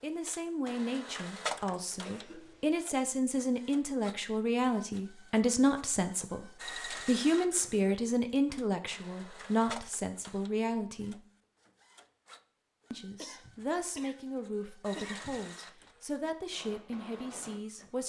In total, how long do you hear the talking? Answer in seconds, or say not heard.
16 s.